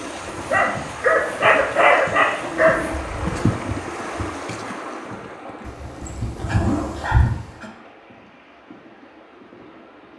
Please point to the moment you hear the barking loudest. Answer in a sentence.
The loudest moment of the barking is at 2 seconds.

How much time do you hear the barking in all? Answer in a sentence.
The barking can be heard for 5 seconds in total.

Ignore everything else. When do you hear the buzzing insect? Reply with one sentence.
You can hear the buzzing insect from 2.9 to 4.2 s.